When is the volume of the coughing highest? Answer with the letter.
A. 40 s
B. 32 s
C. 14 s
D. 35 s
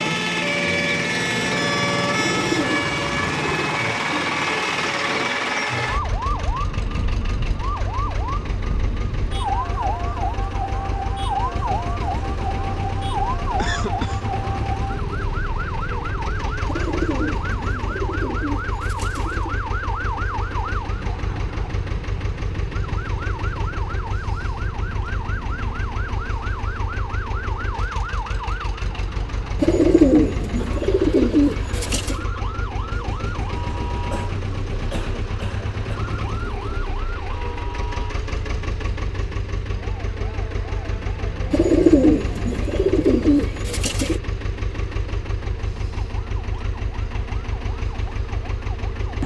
C.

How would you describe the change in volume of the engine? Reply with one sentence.
The volume of the engine goes down.